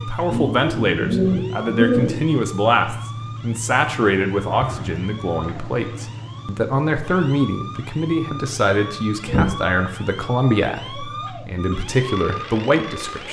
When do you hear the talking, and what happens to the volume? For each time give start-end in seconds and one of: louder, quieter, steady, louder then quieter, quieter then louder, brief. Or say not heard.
0.1-13.2 steady.